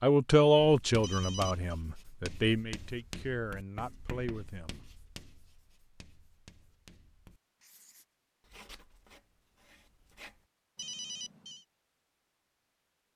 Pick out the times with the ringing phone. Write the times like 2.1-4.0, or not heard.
1.0-1.6, 10.8-11.7.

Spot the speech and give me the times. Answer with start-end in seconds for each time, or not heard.
0.0-4.8.